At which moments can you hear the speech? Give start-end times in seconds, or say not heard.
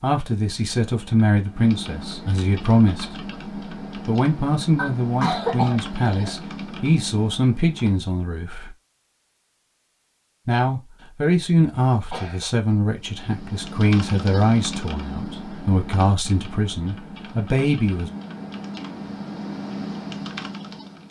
0.0-3.1, 4.0-8.8, 10.4-18.1.